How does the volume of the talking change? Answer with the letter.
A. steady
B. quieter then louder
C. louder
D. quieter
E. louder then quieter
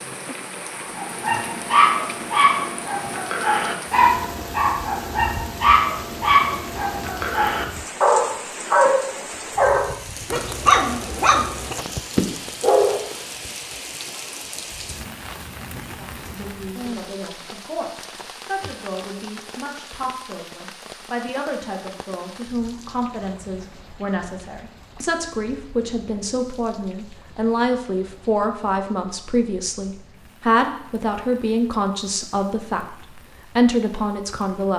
C.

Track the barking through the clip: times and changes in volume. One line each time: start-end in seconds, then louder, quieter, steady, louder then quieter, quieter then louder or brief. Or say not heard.
0.9-13.1 steady.